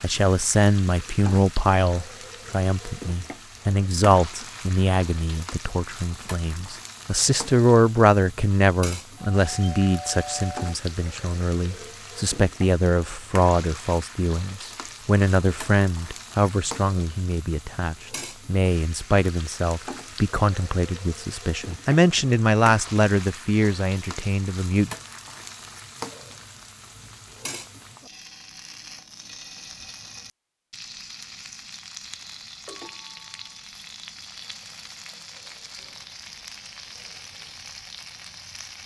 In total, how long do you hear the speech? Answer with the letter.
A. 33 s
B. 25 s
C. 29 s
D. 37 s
B.